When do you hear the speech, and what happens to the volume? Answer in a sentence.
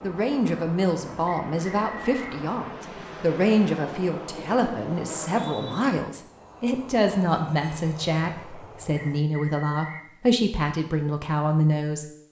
The speech can be heard from 0.0 to 12.1 s, at a steady volume.